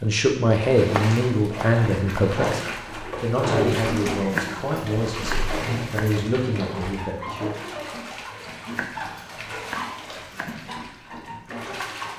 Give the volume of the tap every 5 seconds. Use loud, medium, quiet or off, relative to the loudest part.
loud, loud, medium.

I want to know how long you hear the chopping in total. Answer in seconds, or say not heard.
5 s.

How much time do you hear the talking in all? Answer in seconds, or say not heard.
7 s.